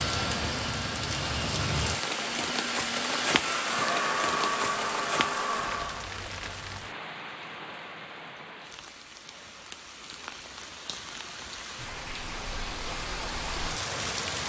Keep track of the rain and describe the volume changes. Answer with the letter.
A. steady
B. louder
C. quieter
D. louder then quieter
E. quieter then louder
E.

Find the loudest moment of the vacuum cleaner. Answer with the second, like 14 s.
4 s.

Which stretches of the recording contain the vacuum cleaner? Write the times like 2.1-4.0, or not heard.
0.0-6.1.